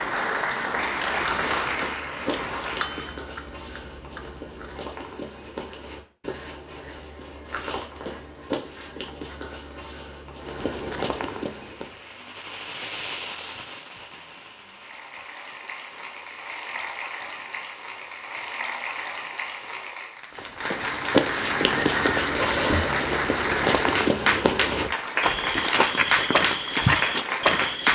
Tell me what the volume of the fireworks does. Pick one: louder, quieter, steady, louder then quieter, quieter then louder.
quieter.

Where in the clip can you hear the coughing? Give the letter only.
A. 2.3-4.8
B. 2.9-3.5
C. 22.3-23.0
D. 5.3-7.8
C.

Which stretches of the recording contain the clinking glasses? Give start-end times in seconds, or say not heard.
2.3-4.8.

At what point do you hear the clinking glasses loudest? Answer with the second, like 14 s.
3 s.